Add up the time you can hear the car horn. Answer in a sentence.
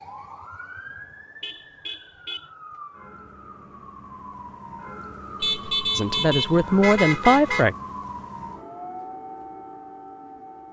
You can hear the car horn for 3 seconds altogether.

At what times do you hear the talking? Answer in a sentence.
You can hear the talking from 6.0 to 7.8 s.